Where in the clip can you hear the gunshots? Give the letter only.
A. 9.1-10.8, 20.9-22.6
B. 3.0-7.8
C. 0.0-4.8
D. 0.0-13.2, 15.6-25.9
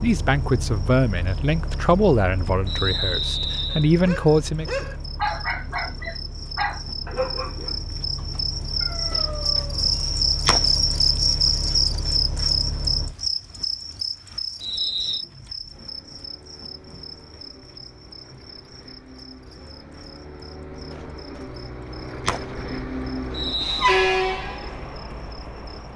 A.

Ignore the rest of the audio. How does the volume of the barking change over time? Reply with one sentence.
The loudness of the barking goes down.